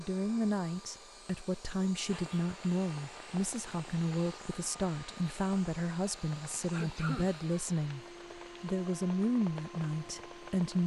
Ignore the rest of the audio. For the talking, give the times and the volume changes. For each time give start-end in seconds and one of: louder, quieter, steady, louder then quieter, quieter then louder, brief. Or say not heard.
0.0-8.0 steady
8.6-10.8 brief.